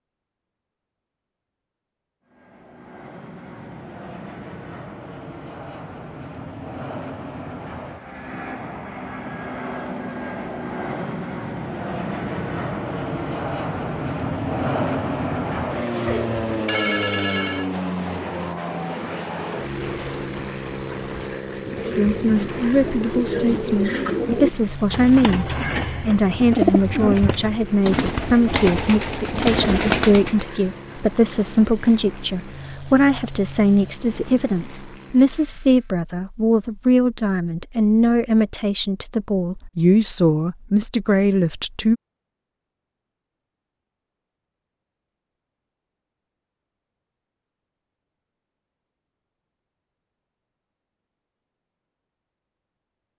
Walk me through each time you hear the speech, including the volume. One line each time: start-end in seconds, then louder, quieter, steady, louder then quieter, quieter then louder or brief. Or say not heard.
21.9-42.0 steady.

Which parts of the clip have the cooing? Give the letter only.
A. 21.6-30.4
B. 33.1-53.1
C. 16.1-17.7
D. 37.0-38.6
A.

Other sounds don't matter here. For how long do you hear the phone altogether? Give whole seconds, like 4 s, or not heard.
2 s.